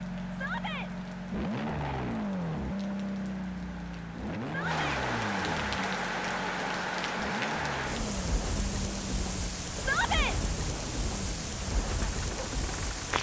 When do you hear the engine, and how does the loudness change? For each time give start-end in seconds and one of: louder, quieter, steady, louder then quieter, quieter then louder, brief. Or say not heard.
0.0-13.1 quieter.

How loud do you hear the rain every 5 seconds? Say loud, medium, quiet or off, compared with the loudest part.
medium, loud, loud.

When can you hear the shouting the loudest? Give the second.
10 s.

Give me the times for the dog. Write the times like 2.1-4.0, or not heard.
not heard.